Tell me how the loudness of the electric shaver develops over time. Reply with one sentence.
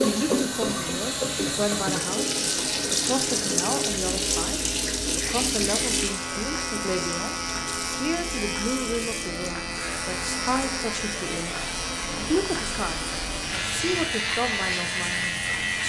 The loudness of the electric shaver goes up.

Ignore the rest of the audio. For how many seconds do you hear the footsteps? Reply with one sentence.
The footsteps can't be heard in this clip.